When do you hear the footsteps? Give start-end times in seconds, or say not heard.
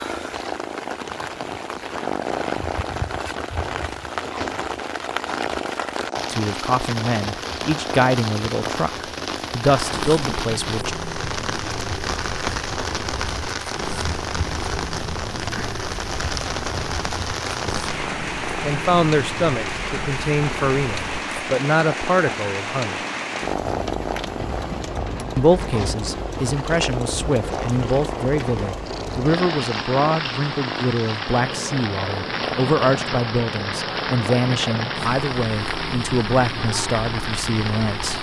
not heard.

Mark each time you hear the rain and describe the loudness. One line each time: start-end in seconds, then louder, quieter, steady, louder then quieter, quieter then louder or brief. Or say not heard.
0.0-38.1 steady.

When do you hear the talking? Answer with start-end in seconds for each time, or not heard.
6.3-10.9, 18.6-23.0, 25.4-38.1.